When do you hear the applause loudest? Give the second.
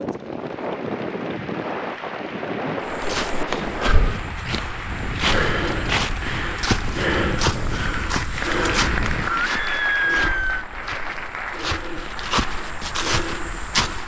9 s.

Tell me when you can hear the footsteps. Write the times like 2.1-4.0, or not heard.
2.9-14.0.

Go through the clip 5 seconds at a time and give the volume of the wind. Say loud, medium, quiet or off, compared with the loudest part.
loud, loud, off.